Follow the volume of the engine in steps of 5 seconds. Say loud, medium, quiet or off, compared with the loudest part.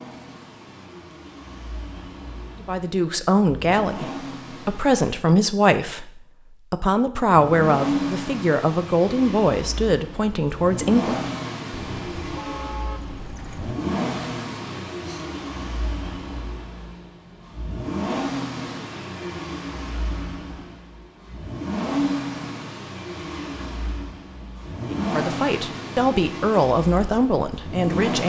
medium, loud, loud, loud, loud, loud.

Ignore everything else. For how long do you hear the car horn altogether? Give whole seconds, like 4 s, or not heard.
2 s.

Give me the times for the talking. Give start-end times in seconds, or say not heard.
2.6-11.2, 24.9-28.2.